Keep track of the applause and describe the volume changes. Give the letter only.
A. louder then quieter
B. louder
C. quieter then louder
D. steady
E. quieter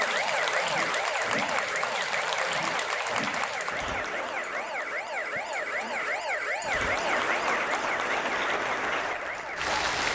C.